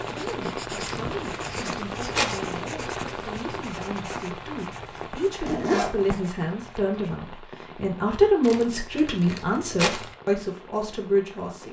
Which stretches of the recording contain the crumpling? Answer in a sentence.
The crumpling can be heard from 0.8 to 2.4 s and from 8.4 to 10.2 s.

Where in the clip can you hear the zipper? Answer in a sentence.
You can hear the zipper from 5.0 to 6.0 s.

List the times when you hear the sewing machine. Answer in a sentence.
You can't hear the sewing machine here.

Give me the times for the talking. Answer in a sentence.
The talking can be heard from 0.0 to 11.6 s.